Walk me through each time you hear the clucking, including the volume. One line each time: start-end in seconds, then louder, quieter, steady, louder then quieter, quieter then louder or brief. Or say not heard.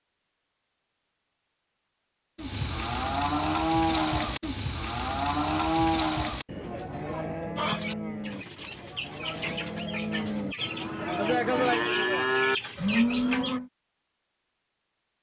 7.5-13.6 louder.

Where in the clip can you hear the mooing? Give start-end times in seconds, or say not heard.
2.4-13.7.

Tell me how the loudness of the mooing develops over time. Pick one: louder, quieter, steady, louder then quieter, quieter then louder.
quieter then louder.